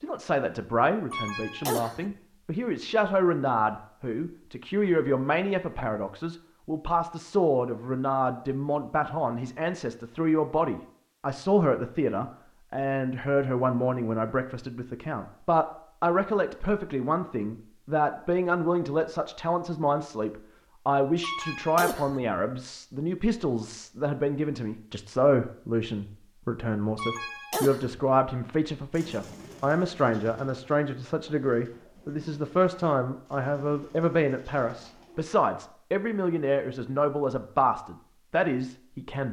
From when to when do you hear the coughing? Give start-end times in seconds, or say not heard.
1.1-2.1, 21.2-22.2, 26.9-28.0.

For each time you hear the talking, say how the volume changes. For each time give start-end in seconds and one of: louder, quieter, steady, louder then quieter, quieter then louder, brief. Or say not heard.
0.0-39.2 steady.